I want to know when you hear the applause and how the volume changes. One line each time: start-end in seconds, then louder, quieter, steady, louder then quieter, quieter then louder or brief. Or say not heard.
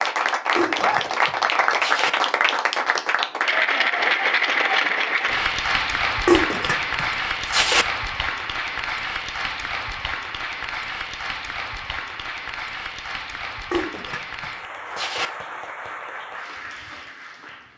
0.0-17.7 quieter.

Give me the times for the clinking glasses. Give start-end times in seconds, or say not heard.
0.6-2.1, 6.2-7.8, 13.7-15.3.